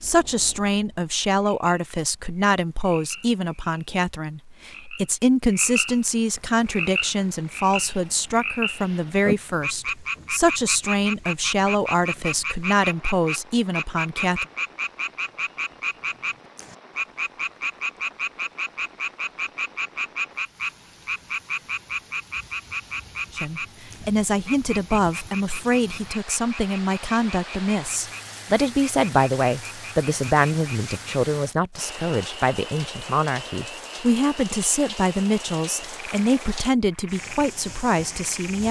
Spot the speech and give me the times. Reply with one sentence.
The speech can be heard from 0.0 to 14.4 s and from 23.4 to 38.6 s.